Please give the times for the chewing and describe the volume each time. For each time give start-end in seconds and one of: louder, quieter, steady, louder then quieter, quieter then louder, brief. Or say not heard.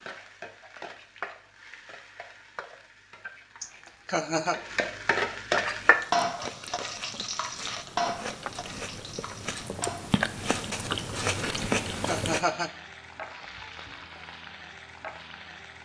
5.6-12.4 louder.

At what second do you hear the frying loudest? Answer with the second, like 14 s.
6 s.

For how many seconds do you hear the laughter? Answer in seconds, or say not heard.
2 s.